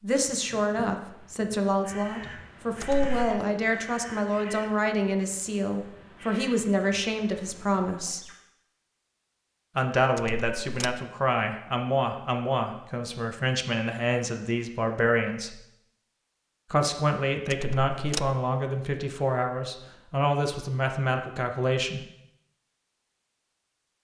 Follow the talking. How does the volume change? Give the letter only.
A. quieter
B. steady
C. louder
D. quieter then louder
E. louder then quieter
B.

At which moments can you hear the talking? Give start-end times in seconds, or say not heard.
0.0-8.2, 9.8-15.6, 16.7-22.0.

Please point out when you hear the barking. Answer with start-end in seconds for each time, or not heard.
not heard.